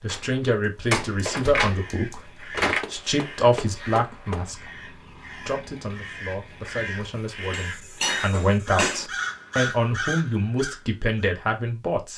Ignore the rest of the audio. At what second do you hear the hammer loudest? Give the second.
9 s.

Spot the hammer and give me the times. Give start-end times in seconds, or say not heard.
2.8-4.5, 7.5-9.1.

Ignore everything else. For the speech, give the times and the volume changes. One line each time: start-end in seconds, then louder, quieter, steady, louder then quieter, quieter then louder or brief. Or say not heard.
0.0-12.1 quieter then louder.